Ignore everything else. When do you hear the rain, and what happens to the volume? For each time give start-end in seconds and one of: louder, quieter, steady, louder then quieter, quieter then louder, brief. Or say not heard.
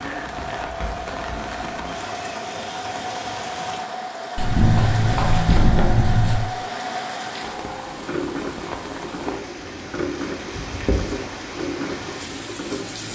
0.0-13.0 steady.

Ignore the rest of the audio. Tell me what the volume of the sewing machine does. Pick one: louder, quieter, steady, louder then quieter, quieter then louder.
steady.